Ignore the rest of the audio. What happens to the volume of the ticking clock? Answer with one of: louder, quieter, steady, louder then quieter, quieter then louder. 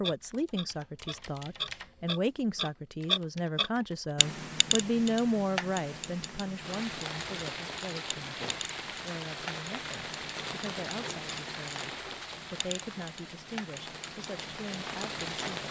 quieter.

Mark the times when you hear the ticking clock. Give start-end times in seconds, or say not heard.
0.0-15.6.